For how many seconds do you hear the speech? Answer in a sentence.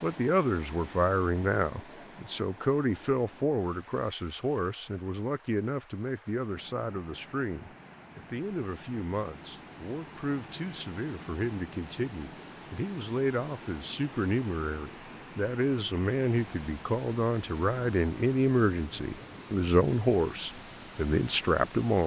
The speech can be heard for 22 seconds in total.